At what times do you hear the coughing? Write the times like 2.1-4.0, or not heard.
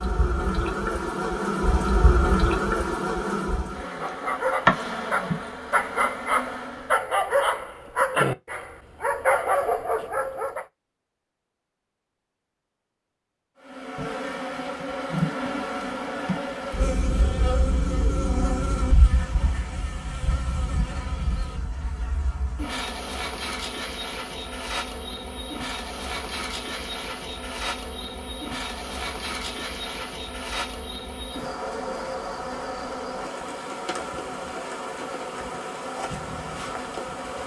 not heard.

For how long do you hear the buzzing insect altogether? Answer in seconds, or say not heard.
31 s.